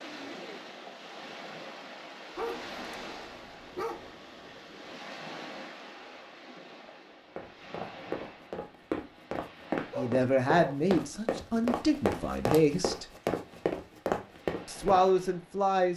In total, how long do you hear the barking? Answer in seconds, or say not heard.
3 s.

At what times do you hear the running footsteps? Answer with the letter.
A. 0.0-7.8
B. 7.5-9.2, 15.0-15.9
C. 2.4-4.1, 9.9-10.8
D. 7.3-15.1
D.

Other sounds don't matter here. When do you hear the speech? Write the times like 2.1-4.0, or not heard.
9.9-13.1, 14.7-15.9.